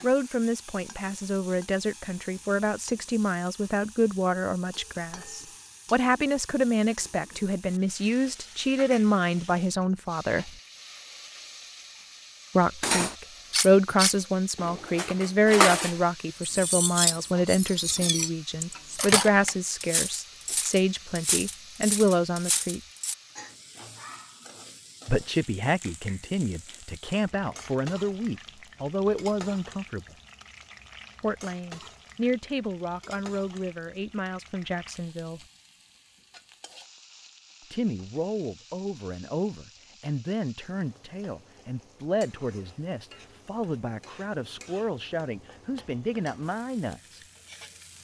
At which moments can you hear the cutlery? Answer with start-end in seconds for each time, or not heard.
12.8-23.1.